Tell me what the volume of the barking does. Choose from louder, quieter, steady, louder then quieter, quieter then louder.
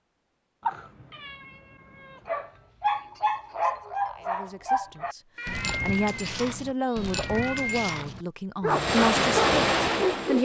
quieter then louder.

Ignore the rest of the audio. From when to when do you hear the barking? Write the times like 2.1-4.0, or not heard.
2.2-10.4.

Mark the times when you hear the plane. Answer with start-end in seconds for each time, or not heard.
8.7-10.4.